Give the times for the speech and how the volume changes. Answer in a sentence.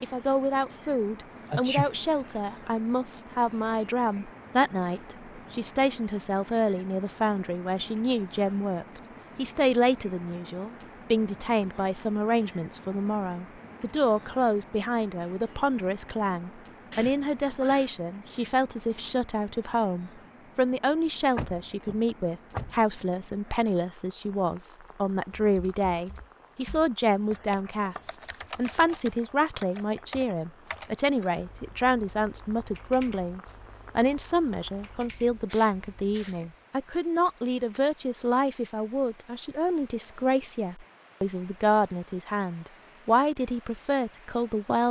You can hear the speech from 0.0 to 44.8 s, at a steady volume.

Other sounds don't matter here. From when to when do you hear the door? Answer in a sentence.
The door can be heard from 21.4 to 22.9 s.